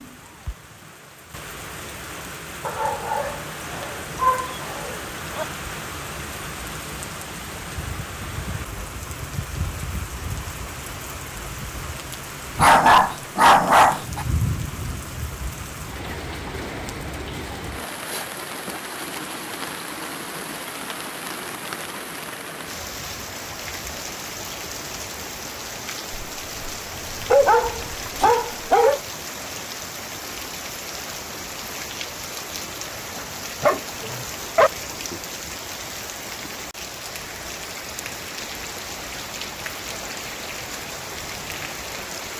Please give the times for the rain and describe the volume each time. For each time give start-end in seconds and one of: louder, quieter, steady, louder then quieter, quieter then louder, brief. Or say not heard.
0.0-42.3 steady.